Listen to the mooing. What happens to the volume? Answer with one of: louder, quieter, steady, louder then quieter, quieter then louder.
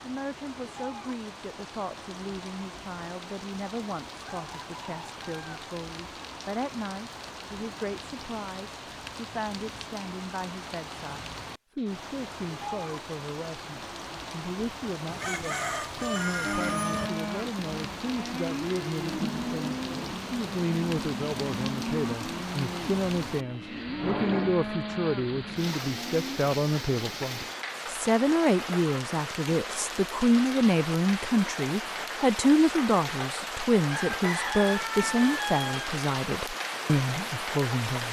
steady.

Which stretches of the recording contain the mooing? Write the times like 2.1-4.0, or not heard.
16.4-26.4.